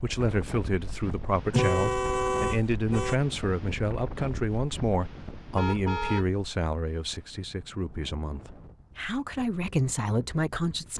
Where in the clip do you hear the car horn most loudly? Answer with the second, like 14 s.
2 s.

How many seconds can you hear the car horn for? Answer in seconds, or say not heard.
2 s.